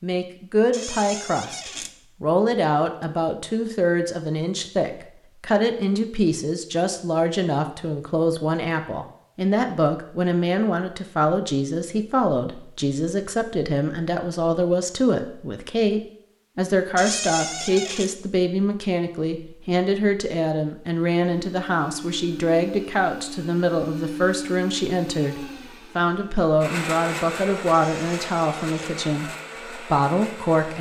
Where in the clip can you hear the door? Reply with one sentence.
The door can be heard from 0.7 to 1.9 s, from 16.9 to 18.1 s and from 27.7 to 28.9 s.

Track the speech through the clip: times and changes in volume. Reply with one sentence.
The speech can be heard from 0.0 to 30.7 s, at a steady volume.